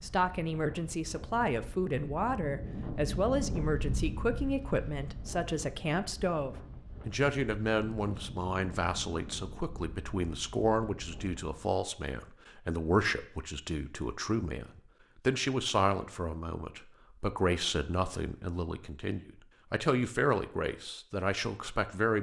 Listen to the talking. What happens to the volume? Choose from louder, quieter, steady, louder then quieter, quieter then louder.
steady.